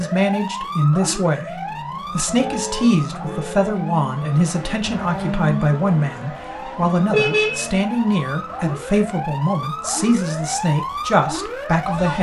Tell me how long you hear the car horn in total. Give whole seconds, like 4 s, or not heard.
2 s.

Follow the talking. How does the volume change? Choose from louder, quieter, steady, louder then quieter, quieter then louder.
steady.